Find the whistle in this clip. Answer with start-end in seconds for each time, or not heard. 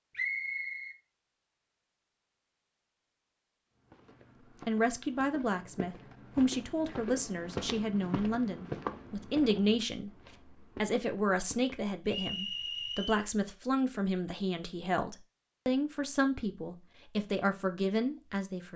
0.1-0.9, 12.1-13.2.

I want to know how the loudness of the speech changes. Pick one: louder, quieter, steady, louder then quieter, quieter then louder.
steady.